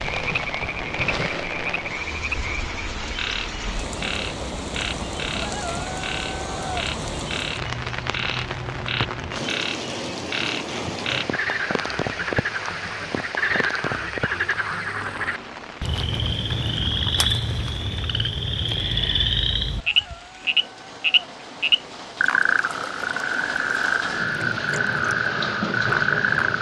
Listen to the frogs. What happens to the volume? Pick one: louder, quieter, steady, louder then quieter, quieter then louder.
louder.